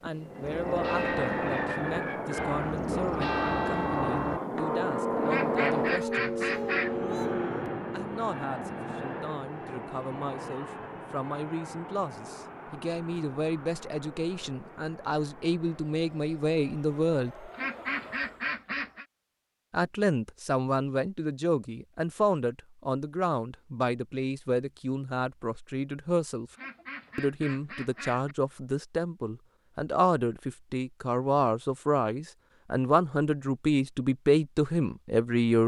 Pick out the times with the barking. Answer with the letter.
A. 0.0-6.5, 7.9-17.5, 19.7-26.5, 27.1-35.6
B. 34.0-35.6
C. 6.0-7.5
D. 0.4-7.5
C.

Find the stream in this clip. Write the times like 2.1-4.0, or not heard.
not heard.